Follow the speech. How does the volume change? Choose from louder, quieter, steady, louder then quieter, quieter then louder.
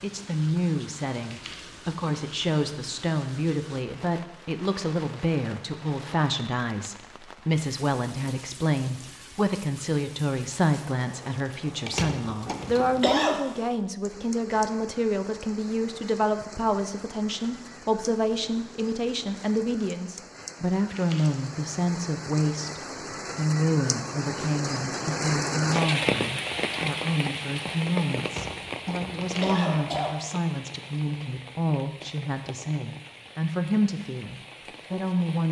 steady.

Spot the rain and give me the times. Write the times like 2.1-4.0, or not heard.
0.0-35.4.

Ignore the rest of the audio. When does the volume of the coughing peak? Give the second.
13 s.